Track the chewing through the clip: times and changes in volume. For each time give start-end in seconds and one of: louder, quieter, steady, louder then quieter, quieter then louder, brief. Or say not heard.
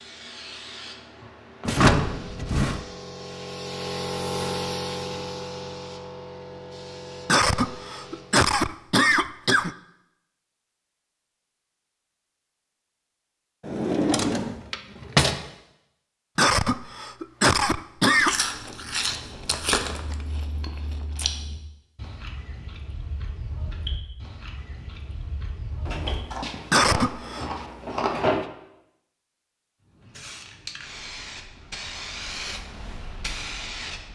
18.1-28.1 quieter then louder.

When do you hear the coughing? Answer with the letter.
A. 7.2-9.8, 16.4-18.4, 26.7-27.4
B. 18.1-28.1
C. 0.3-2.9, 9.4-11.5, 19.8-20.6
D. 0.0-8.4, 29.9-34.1
A.